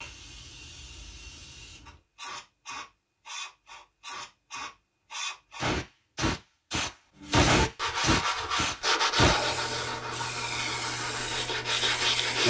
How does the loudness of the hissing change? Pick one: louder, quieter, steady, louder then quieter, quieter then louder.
louder then quieter.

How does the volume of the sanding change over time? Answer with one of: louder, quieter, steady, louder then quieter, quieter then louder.
quieter then louder.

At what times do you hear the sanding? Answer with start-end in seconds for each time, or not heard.
7.2-12.4.